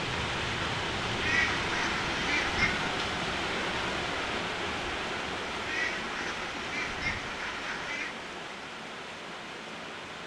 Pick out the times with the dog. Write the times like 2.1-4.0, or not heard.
not heard.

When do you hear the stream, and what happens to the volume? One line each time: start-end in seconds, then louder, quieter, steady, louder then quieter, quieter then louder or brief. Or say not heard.
0.0-10.2 quieter.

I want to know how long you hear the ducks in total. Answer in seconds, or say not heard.
4 s.